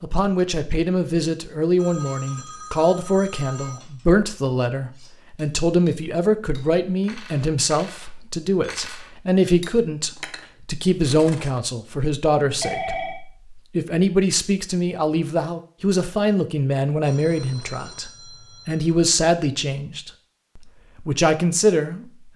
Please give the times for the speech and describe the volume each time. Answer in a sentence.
The speech can be heard from 0.0 to 22.3 s, at a steady volume.